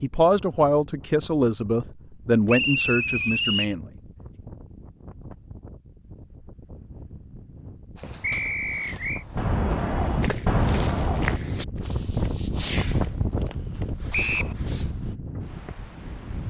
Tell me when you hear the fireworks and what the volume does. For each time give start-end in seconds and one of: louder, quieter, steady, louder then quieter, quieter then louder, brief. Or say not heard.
9.3-15.8 quieter.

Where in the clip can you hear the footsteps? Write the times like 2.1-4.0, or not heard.
8.0-15.2.